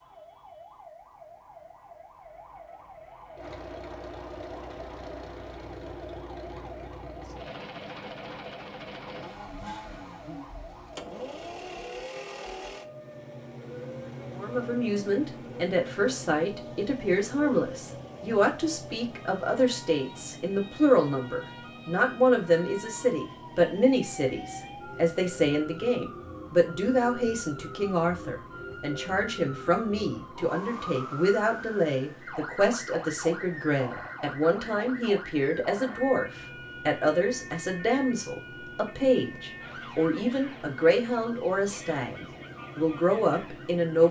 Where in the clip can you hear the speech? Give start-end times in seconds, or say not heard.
14.3-44.0.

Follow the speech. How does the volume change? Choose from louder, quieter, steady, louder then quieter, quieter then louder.
steady.